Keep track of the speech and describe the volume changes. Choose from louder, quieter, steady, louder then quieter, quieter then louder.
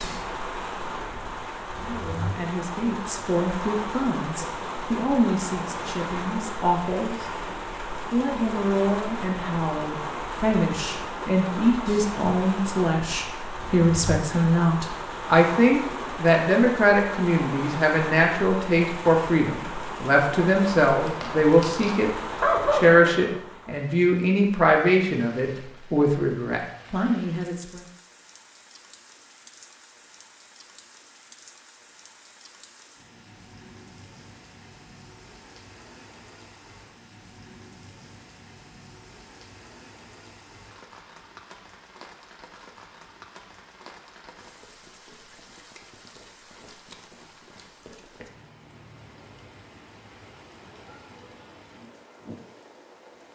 louder.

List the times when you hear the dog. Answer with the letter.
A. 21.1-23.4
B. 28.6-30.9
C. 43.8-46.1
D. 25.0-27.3
A.